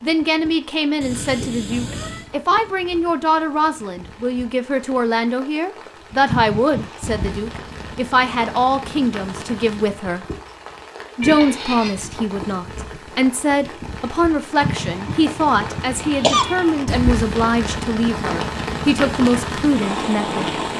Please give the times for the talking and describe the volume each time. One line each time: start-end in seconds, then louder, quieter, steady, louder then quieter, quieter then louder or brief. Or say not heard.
0.0-10.2 steady
11.2-20.6 steady.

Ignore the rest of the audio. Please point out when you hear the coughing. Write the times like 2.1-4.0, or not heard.
6.2-7.4, 14.6-16.4.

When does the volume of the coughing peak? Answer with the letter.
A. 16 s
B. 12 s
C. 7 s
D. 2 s
A.